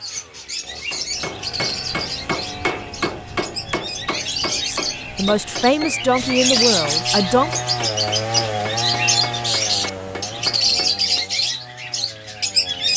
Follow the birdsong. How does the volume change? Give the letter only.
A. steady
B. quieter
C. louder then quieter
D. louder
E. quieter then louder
D.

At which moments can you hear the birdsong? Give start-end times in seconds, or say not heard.
0.0-12.9.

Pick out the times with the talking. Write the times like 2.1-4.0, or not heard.
4.7-7.5.